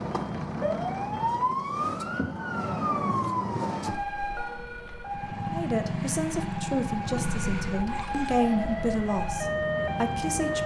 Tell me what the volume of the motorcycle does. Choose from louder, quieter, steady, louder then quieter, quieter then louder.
quieter.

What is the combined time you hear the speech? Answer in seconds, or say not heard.
5 s.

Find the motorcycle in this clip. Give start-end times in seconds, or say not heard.
5.0-10.6.